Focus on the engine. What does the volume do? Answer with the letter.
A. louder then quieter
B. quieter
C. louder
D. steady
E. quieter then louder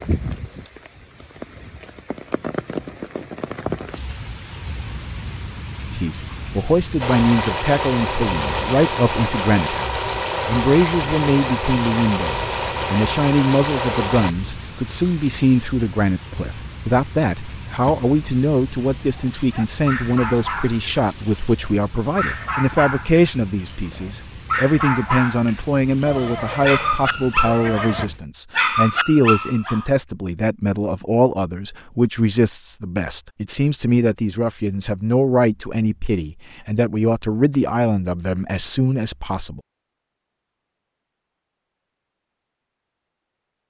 D.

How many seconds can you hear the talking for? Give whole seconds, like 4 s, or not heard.
34 s.